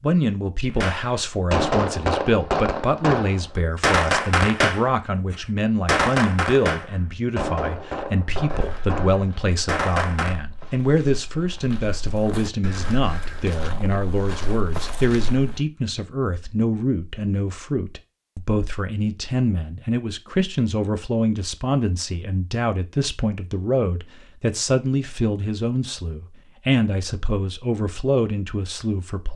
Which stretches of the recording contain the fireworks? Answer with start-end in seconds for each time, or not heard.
0.8-10.4.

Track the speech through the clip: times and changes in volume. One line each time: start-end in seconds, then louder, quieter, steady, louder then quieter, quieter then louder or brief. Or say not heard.
0.0-29.3 steady.